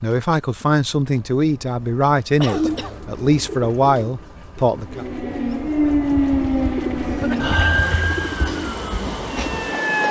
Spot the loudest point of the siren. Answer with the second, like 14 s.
6 s.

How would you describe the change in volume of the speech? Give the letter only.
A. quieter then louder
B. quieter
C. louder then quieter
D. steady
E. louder
D.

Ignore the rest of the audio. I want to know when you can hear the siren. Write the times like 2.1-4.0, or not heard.
4.8-10.0.